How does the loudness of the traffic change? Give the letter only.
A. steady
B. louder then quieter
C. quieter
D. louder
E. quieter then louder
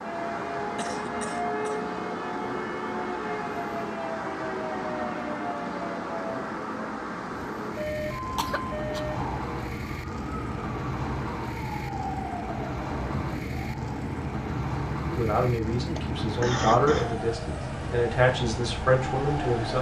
A.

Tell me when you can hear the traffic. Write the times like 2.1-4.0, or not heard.
0.0-19.7.